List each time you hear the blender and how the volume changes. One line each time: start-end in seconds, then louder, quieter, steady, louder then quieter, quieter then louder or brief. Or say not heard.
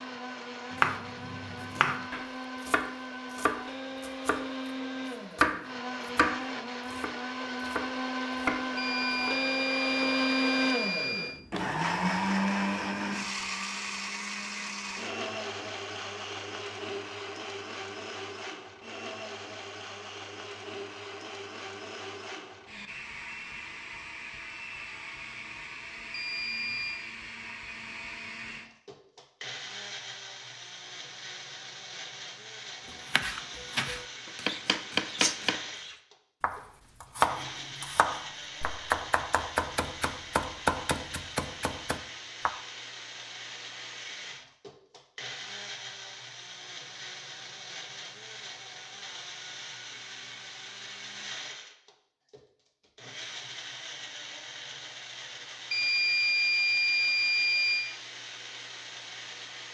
0.0-59.6 quieter.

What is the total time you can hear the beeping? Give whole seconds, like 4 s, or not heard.
6 s.